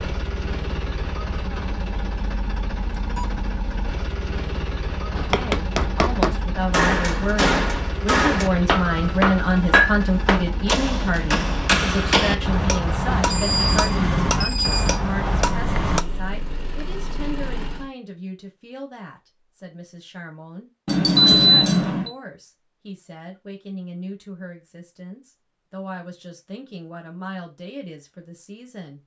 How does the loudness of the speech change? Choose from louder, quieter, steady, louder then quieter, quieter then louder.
quieter.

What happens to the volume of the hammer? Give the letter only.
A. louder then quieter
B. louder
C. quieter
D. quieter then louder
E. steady
E.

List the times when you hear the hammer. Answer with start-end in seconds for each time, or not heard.
5.2-16.0.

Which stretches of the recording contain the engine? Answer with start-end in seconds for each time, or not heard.
0.0-17.9.